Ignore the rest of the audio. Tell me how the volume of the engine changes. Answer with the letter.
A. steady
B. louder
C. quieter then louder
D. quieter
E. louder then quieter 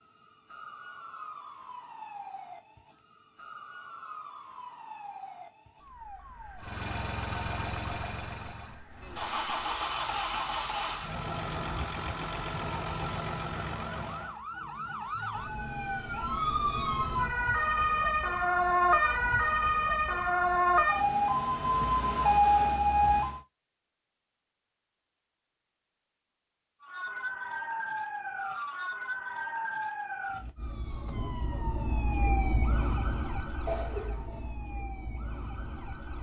A.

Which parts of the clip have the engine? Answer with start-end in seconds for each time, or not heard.
6.5-14.4.